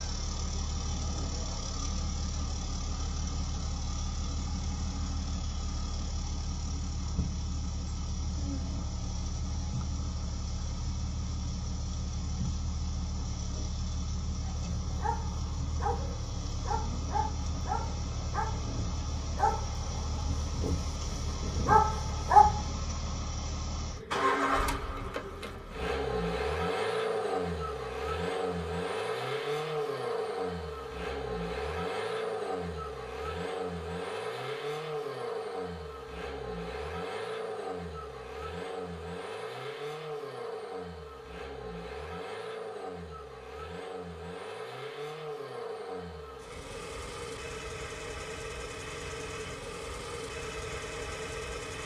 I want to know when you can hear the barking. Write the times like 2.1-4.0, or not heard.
14.4-22.6.